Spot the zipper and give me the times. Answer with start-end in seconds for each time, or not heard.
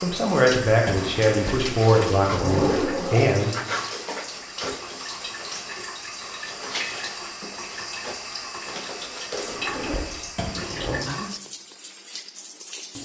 1.1-3.4, 9.4-11.1.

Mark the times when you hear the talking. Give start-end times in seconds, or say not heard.
0.0-3.5.